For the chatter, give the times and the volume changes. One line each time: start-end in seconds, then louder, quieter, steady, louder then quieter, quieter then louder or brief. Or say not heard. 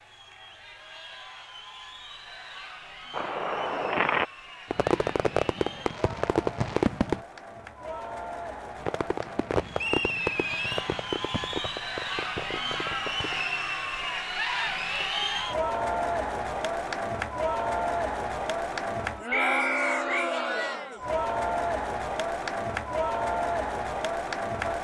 0.0-24.7 louder.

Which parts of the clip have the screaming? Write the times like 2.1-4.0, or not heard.
not heard.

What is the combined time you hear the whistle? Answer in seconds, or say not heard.
2 s.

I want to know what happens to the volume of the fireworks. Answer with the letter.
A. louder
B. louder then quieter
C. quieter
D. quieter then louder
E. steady
C.